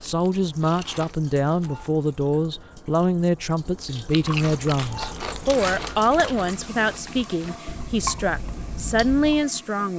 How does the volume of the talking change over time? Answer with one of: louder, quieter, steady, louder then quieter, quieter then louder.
steady.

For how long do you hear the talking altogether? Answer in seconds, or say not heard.
10 s.